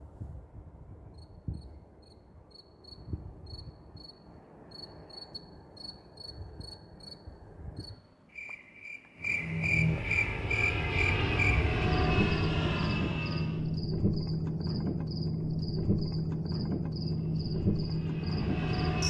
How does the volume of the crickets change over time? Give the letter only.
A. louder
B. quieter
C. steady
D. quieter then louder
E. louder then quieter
A.